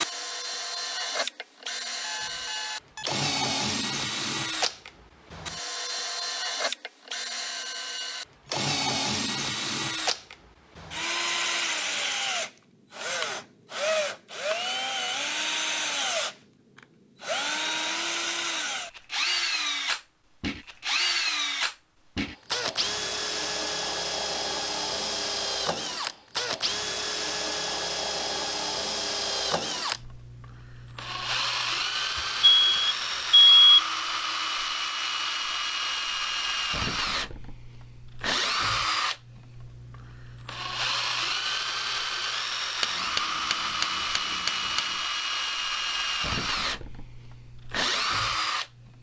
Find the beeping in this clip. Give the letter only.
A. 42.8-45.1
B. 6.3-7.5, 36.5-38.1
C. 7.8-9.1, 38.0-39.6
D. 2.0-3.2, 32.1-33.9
D.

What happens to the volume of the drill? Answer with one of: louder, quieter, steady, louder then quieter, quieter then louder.
steady.